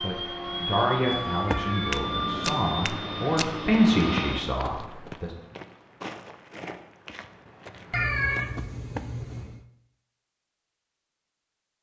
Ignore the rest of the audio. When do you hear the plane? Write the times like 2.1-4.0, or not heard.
0.0-4.5.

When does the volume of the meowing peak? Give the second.
8 s.